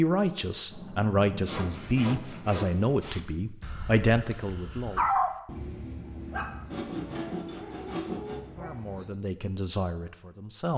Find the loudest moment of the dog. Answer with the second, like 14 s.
5 s.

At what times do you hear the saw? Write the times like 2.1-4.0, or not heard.
1.4-3.2, 6.7-8.6.